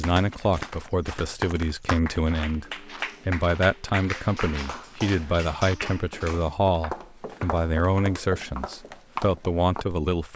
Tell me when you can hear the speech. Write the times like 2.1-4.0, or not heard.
0.0-10.3.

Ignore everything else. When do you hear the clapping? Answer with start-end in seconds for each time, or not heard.
0.0-6.5.